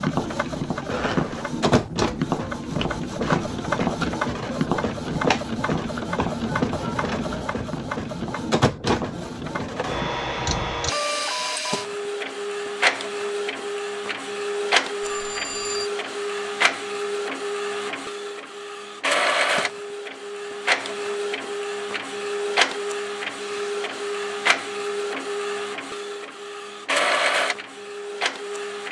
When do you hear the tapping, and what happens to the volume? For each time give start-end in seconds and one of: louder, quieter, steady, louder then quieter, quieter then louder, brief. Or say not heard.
0.0-10.8 quieter.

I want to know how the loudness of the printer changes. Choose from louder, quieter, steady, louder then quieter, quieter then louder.
steady.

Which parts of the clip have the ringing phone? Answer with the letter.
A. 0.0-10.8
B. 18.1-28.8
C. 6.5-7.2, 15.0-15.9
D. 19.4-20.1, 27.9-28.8
C.